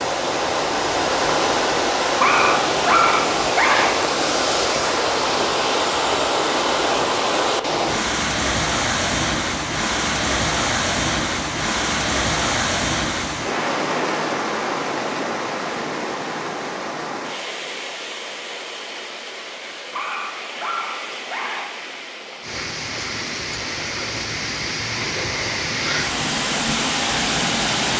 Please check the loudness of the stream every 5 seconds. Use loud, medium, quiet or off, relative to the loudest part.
loud, loud, loud, medium, medium, loud.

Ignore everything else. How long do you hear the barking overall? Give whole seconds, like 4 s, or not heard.
4 s.